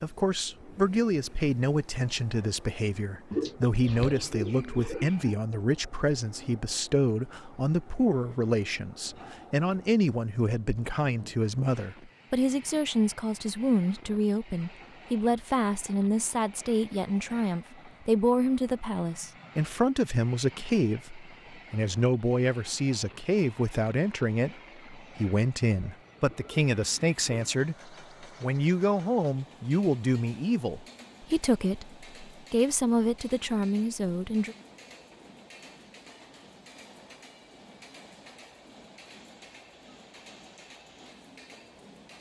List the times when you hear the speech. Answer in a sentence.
You can hear the speech from 0.0 to 34.5 s.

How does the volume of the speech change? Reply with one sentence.
The volume of the speech stays about the same.